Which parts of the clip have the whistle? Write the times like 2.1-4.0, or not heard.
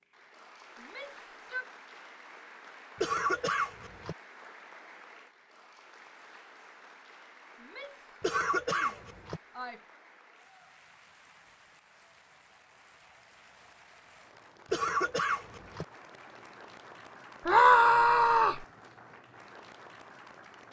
not heard.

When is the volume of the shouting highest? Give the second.
18 s.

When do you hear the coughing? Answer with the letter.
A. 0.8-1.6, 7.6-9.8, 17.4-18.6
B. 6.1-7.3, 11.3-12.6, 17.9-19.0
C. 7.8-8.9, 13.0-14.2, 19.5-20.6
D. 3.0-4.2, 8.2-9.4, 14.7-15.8
D.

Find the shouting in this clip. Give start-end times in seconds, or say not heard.
0.8-1.6, 7.6-9.8, 17.4-18.6.